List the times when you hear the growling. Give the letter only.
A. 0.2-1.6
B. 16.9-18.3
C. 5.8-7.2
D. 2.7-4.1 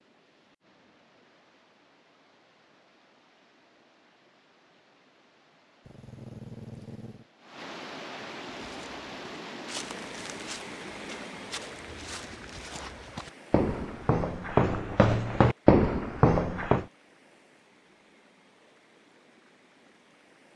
C.